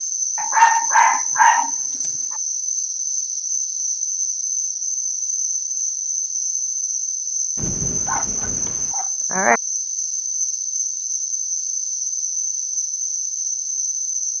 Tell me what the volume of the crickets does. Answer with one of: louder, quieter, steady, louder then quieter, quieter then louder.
steady.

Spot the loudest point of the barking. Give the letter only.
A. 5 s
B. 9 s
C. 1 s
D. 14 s
C.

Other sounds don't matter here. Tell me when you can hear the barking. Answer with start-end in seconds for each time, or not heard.
0.3-2.0, 8.1-9.6.